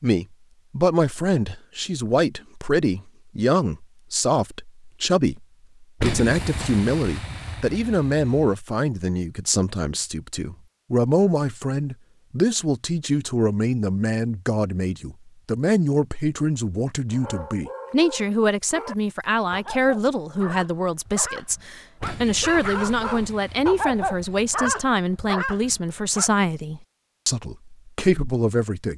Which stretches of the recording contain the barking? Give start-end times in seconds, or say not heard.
17.1-26.4.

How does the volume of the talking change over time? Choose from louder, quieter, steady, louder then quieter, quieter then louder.
steady.